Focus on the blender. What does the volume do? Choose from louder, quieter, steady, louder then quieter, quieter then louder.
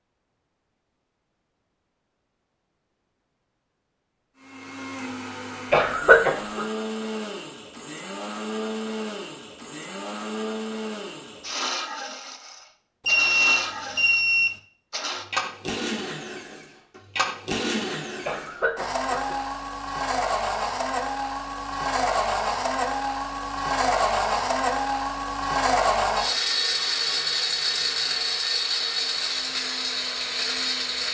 louder.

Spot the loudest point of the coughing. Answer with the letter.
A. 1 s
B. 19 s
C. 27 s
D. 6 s
D.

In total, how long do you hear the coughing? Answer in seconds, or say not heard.
2 s.